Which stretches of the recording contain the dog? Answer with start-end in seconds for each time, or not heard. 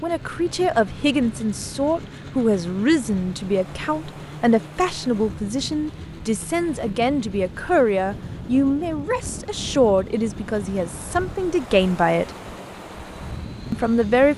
not heard.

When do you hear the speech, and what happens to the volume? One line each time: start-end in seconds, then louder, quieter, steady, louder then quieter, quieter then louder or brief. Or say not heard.
0.0-12.3 steady
13.7-14.3 brief.